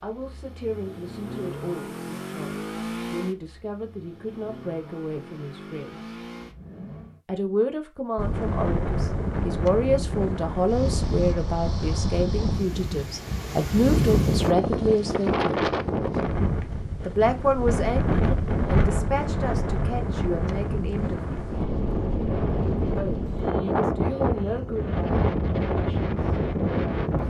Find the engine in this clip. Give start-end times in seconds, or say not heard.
0.0-7.2.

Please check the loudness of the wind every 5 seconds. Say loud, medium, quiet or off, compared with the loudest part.
off, loud, loud, loud, loud, loud.